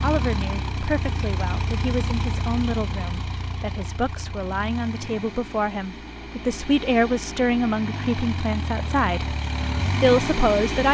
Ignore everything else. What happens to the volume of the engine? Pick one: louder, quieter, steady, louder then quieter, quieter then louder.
quieter then louder.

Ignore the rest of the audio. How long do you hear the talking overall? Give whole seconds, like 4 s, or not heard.
10 s.